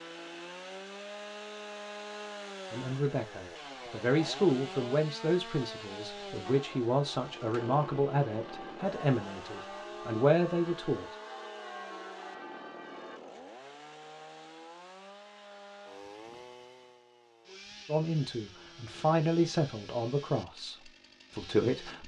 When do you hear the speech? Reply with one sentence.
You can hear the speech from 2.7 to 11.1 s and from 17.9 to 22.0 s.